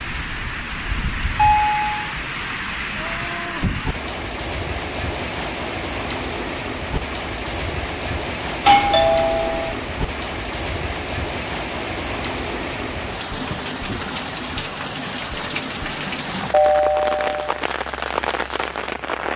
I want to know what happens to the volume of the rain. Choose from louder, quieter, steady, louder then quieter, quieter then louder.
steady.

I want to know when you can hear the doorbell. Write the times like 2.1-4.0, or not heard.
1.4-1.9, 8.7-9.8, 16.5-17.6.